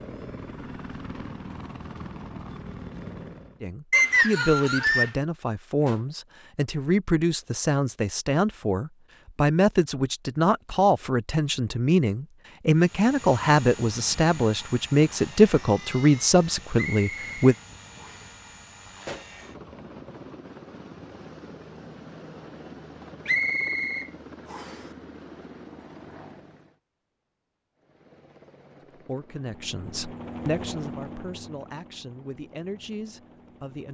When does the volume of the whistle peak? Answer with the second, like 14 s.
4 s.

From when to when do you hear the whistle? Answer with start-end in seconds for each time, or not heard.
3.9-5.1, 16.8-18.3, 23.2-24.9.